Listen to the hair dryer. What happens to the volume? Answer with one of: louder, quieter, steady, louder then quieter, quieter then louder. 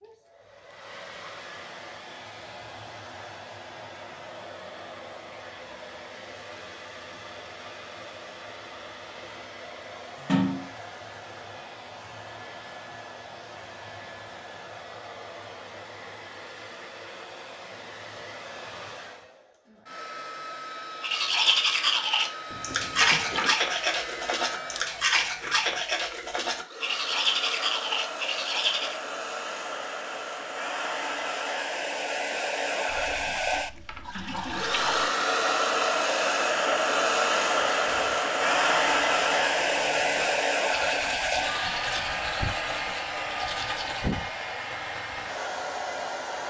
louder.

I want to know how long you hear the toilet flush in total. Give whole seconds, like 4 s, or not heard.
4 s.